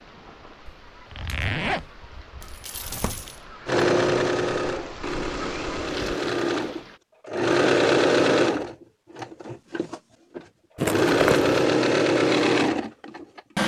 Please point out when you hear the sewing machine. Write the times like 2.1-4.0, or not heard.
3.6-13.6.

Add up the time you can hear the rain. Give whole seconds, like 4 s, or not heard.
7 s.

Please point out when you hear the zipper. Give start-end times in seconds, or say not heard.
0.7-3.3, 10.8-11.5.